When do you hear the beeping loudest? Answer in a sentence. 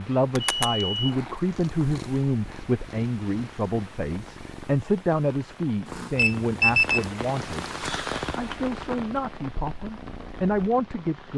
The volume of the beeping peaks at 7 seconds.